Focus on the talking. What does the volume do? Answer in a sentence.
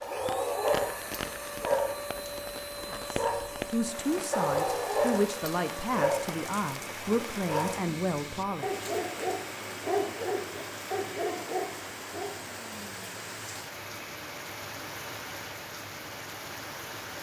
The volume of the talking stays about the same.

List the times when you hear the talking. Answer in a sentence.
You can hear the talking from 2.9 to 8.7 s.